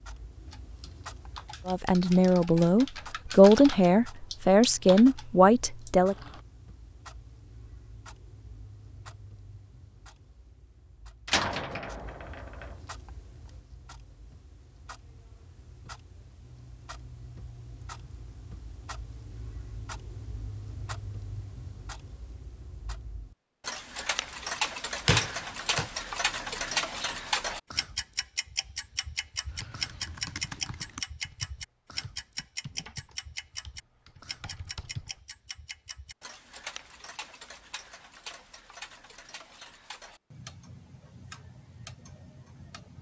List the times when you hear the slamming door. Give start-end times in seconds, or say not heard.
11.2-12.8, 25.1-25.9.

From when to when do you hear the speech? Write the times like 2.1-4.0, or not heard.
1.6-6.2.